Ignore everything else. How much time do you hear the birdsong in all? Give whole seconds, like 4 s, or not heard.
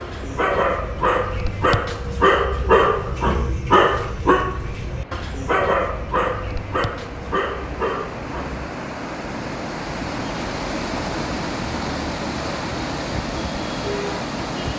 not heard.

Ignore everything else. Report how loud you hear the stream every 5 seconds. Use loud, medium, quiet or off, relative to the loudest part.
quiet, medium, loud.